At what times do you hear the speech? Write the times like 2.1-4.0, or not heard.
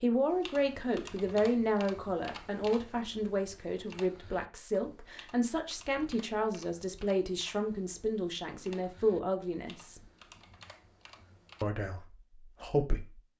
0.0-10.0, 11.6-13.2.